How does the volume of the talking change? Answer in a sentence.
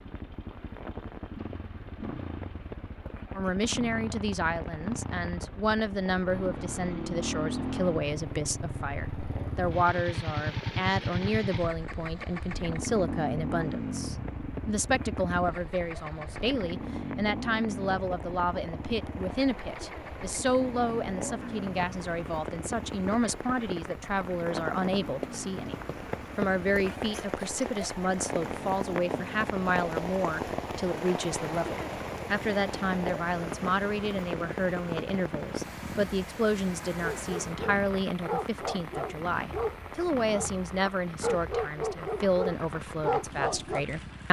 The volume of the talking stays about the same.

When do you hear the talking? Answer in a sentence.
You can hear the talking from 3.4 to 25.8 s and from 26.4 to 44.2 s.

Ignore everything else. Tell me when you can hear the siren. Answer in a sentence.
You can't hear the siren here.